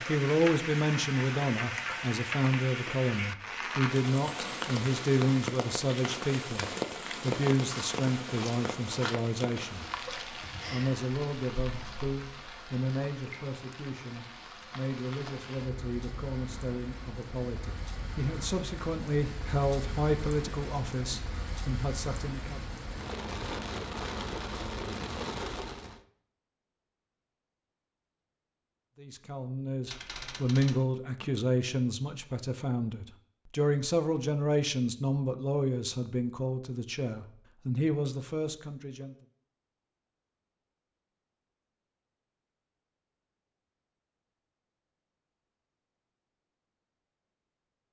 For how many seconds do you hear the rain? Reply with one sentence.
The rain can be heard for 26 seconds in total.